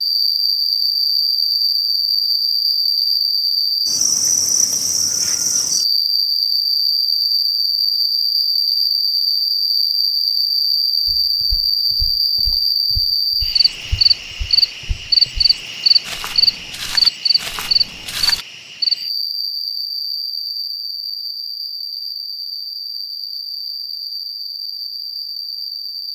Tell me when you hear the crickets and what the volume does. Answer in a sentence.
You can hear the crickets from 0.0 to 26.0 s, getting quieter.